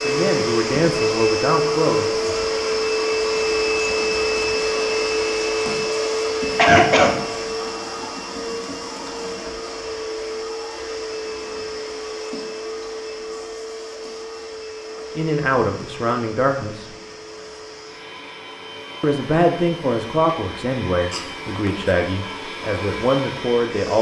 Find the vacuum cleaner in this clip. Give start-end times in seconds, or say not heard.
0.0-23.9.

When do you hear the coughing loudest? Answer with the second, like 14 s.
7 s.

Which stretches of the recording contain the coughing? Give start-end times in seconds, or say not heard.
6.5-7.2, 21.1-21.9.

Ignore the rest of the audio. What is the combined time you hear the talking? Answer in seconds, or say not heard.
9 s.